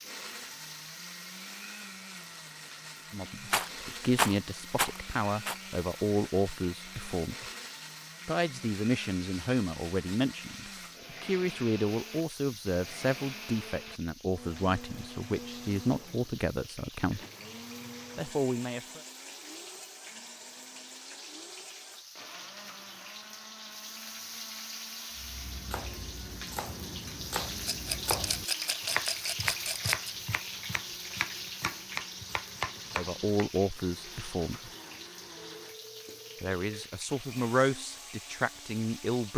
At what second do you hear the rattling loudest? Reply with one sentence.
The volume of the rattling peaks at 4 seconds.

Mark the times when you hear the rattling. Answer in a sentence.
You can hear the rattling from 3.5 to 5.5 s and from 27.6 to 30.1 s.